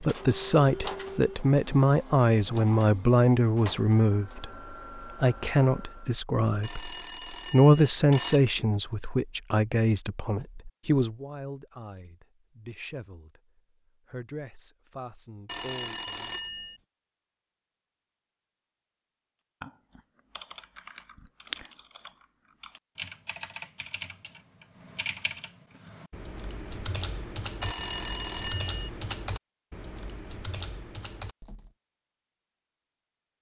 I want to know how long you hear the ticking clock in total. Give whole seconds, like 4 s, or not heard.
not heard.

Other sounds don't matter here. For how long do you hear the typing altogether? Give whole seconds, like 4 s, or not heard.
12 s.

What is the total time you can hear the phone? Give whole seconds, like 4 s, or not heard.
5 s.